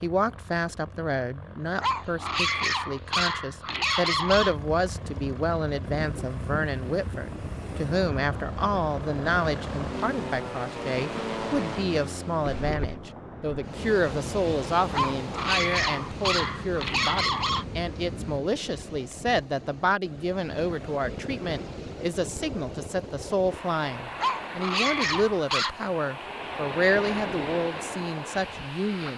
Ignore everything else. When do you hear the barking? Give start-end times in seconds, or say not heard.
1.8-4.5, 14.9-17.6, 24.1-25.8.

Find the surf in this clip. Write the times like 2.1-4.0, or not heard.
5.8-29.1.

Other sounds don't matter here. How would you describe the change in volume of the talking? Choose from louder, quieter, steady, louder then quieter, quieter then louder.
steady.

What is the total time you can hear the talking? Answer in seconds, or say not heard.
29 s.